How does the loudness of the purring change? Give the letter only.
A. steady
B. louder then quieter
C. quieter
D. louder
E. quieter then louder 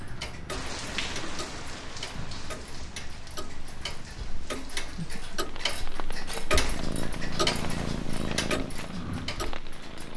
D.